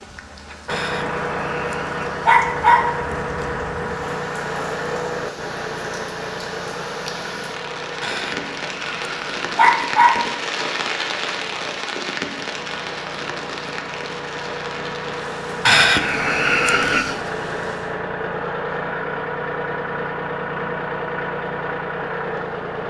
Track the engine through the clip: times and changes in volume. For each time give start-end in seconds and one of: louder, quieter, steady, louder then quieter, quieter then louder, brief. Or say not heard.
0.0-22.8 quieter then louder.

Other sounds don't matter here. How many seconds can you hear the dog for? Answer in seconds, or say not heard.
6 s.